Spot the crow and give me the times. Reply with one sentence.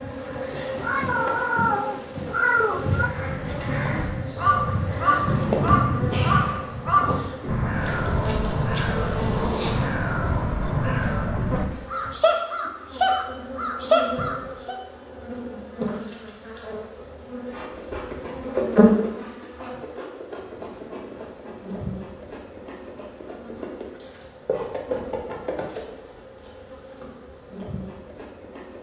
You can hear the crow from 3.0 to 14.8 s.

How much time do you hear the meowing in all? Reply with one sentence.
You can hear the meowing for 2 seconds altogether.